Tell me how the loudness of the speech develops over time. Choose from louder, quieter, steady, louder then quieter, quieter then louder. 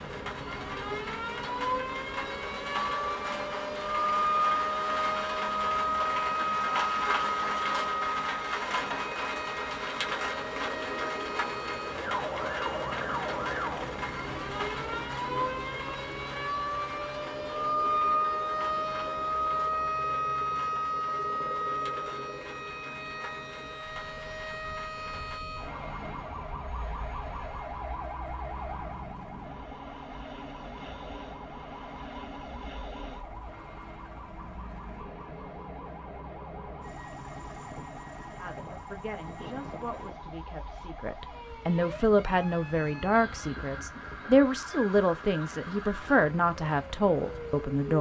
louder.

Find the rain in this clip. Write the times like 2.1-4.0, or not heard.
0.0-25.4.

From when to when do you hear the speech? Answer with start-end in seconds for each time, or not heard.
38.4-47.9.